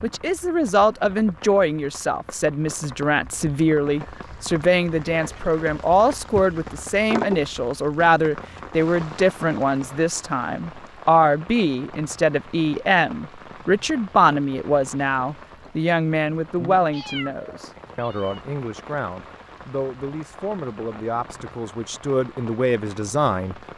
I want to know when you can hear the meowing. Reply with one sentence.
You can hear the meowing from 16.9 to 18.4 s.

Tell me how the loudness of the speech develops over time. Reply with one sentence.
The volume of the speech goes down.